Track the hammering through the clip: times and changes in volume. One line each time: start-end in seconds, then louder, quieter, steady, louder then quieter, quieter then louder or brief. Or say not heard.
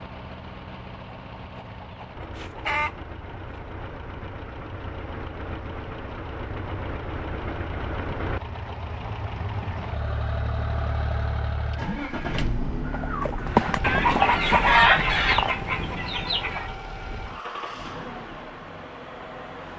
not heard.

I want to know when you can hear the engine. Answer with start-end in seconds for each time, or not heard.
0.0-19.7.